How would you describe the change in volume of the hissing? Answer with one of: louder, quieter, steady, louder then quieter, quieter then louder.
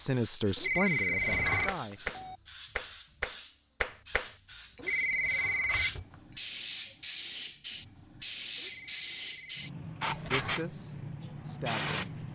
louder.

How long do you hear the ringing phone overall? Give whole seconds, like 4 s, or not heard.
4 s.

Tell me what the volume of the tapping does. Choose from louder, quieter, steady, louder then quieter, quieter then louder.
steady.